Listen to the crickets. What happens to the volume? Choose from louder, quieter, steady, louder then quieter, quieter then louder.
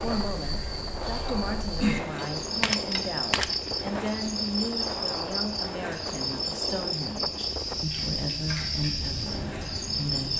steady.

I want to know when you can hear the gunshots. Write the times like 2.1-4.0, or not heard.
2.4-4.1.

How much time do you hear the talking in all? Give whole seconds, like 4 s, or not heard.
10 s.